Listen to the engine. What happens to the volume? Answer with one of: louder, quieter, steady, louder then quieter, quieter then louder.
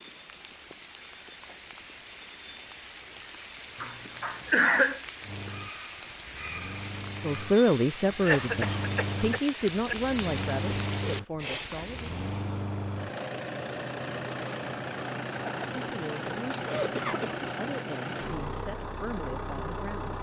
louder.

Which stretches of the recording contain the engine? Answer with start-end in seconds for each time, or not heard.
5.2-20.1.